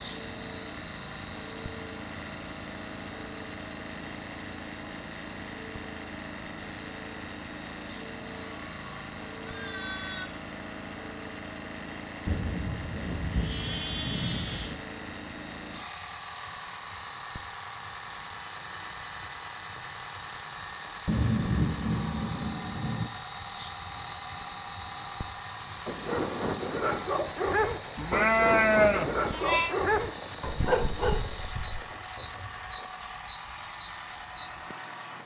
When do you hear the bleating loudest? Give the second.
29 s.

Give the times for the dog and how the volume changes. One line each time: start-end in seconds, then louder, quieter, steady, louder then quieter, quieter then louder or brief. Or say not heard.
25.9-31.8 steady.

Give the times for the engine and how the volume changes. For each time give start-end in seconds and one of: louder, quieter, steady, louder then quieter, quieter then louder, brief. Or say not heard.
0.0-35.2 steady.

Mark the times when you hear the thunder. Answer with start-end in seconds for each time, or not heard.
12.2-14.8, 21.1-23.1.